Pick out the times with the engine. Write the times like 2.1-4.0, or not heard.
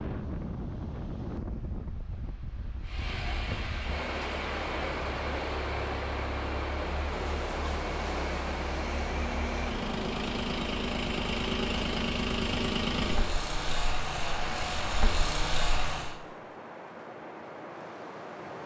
2.8-16.2.